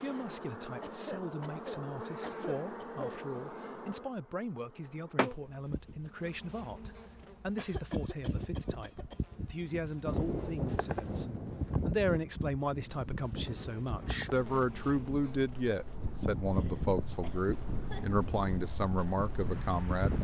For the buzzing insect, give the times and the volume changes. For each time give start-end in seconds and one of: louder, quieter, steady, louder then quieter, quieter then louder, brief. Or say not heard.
0.0-20.1 steady.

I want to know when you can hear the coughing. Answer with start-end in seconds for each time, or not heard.
0.8-3.2, 7.5-9.2, 16.1-18.1.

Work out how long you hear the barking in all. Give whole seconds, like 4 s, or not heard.
not heard.